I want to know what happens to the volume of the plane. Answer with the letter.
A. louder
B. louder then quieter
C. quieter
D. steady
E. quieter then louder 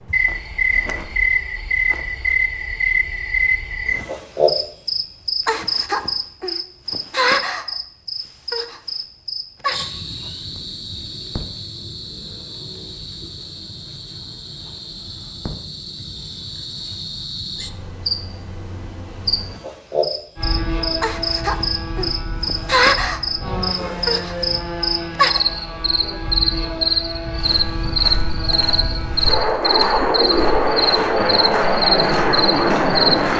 A.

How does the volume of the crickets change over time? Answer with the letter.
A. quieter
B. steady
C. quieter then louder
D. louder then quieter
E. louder
C.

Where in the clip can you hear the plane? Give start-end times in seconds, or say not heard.
20.4-33.3.